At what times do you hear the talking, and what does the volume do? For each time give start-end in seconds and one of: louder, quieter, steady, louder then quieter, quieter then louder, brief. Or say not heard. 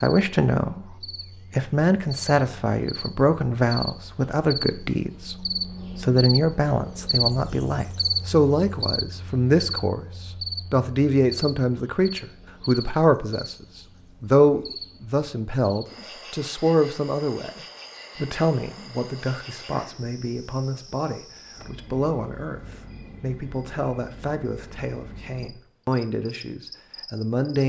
0.0-13.6 steady
14.2-27.6 quieter.